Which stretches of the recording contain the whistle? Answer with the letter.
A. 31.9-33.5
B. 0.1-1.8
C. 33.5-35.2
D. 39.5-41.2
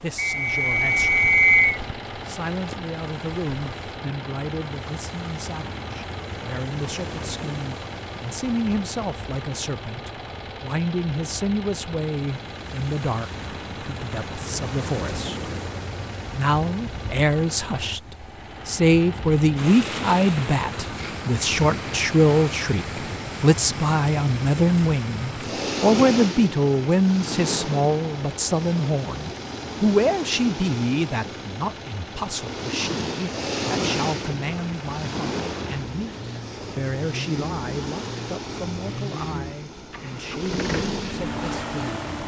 B.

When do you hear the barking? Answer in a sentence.
You can't hear the barking here.